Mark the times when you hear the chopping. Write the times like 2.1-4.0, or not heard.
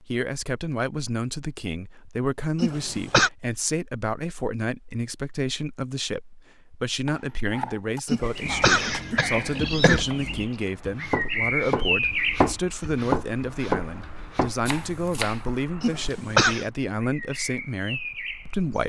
7.0-15.5.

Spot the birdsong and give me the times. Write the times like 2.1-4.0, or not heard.
8.2-18.8.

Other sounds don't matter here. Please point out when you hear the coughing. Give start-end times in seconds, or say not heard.
2.6-3.3, 8.1-10.1, 15.8-16.6.